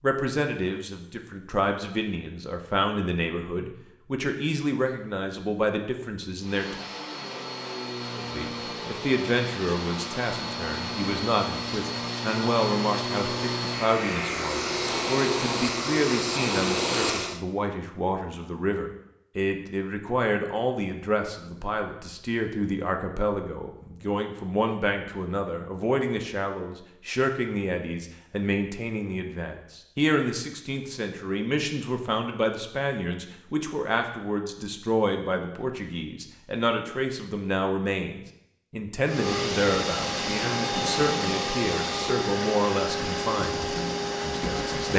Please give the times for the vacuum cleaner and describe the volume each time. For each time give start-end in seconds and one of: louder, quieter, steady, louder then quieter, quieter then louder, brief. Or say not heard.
6.4-17.4 louder
39.0-44.9 steady.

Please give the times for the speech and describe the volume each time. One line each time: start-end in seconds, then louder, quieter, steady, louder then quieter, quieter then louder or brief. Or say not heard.
0.0-6.8 steady
8.1-44.9 steady.